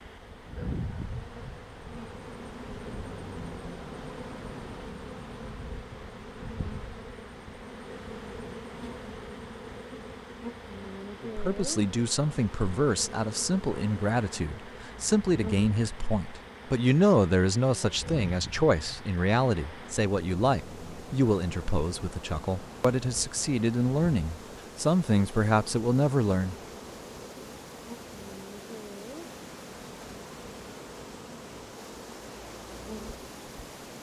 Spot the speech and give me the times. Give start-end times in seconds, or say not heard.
11.2-26.6.